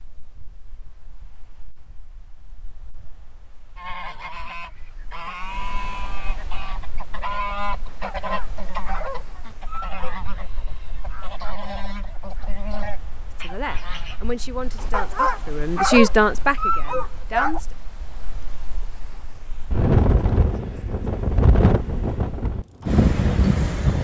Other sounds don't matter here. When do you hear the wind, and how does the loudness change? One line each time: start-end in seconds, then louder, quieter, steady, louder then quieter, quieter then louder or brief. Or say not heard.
0.0-23.9 louder.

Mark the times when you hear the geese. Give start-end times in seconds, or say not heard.
3.8-14.3.